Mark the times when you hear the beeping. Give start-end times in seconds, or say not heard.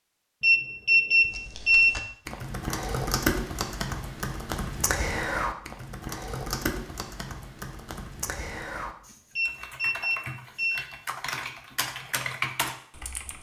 0.4-1.9, 9.3-10.8.